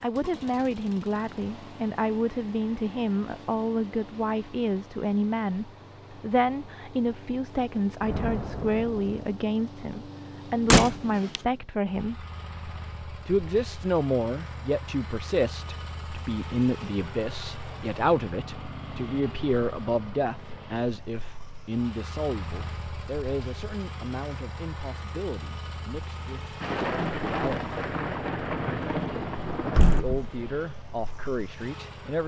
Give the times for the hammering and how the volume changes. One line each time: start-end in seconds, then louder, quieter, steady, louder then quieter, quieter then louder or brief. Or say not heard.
not heard.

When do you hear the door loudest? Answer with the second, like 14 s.
11 s.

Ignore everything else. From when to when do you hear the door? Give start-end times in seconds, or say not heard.
10.7-11.4, 29.8-30.4.